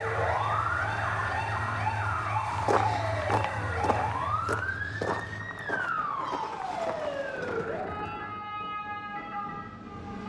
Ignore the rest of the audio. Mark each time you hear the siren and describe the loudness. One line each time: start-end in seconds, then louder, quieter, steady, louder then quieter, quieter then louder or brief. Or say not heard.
0.0-10.2 quieter.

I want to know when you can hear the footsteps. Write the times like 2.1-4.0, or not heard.
2.5-7.7.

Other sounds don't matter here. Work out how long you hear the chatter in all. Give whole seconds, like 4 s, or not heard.
not heard.